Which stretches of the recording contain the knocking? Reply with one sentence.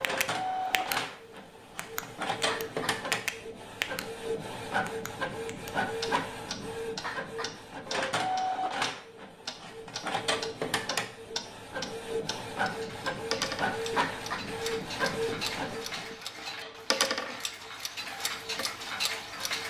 You can't hear the knocking here.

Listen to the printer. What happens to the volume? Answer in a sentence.
The volume of the printer goes down.